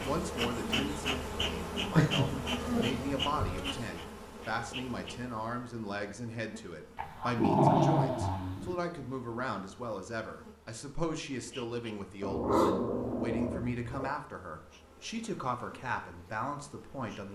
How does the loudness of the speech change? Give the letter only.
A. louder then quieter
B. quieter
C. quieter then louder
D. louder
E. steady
E.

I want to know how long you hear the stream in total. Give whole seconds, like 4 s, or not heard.
not heard.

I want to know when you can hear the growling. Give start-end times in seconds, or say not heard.
1.9-3.5, 7.0-8.8, 12.2-14.1.